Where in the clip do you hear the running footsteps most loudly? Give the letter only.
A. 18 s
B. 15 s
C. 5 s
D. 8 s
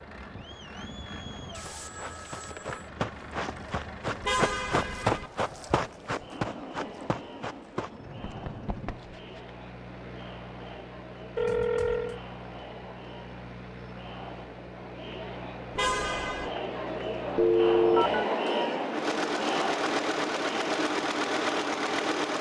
C.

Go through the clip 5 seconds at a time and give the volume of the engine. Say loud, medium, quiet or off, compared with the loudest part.
quiet, quiet, quiet, medium, loud.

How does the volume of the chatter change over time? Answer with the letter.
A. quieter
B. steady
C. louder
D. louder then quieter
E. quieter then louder
C.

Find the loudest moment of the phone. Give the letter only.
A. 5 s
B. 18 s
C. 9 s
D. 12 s
B.